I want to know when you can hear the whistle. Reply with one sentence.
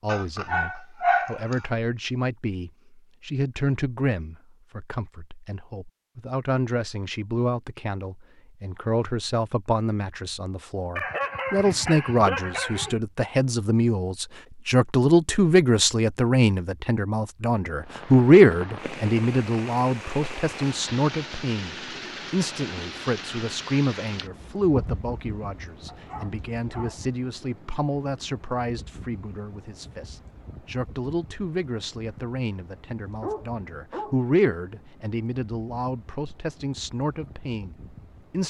The whistle can't be heard in this clip.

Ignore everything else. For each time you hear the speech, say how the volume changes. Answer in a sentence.
The speech can be heard from 0.0 to 38.4 s, getting louder then quieter.